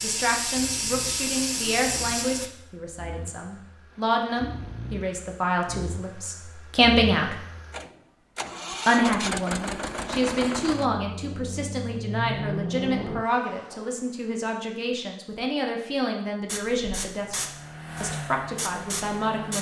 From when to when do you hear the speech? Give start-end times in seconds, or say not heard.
0.0-7.3, 8.8-17.4, 18.0-19.5.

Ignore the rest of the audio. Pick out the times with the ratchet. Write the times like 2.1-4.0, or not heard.
not heard.